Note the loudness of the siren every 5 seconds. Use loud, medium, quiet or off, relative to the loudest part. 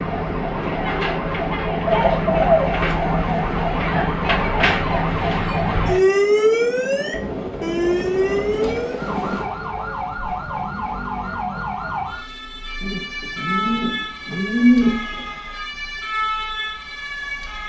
loud, loud, medium, medium.